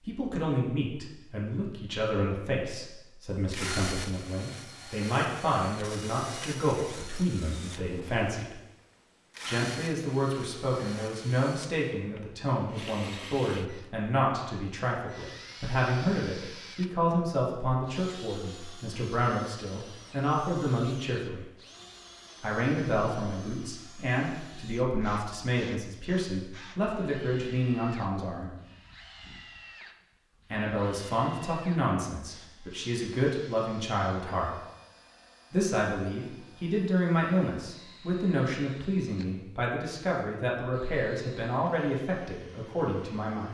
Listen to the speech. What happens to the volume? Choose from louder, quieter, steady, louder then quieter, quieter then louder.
steady.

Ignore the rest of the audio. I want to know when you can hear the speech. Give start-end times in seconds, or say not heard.
0.1-8.6, 9.4-21.4, 22.4-28.5, 30.5-34.5, 35.5-43.4.